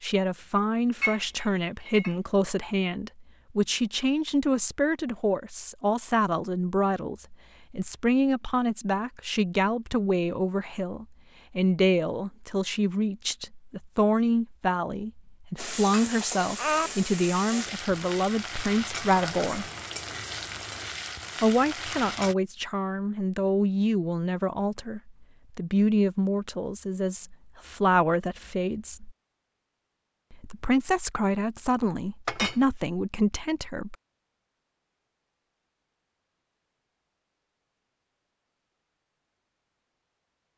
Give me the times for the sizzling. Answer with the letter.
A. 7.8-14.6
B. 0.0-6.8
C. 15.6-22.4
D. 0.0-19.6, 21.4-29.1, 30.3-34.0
C.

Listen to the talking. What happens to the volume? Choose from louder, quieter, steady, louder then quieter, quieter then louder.
steady.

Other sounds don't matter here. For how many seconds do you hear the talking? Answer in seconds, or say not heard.
31 s.